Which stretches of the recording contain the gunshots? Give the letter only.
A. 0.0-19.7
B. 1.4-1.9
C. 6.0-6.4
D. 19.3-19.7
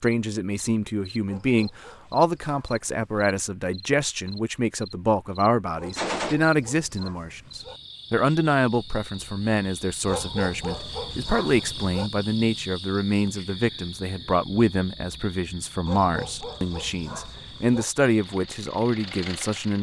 C.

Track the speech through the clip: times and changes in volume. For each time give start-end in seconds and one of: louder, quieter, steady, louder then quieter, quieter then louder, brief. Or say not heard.
0.0-19.7 steady.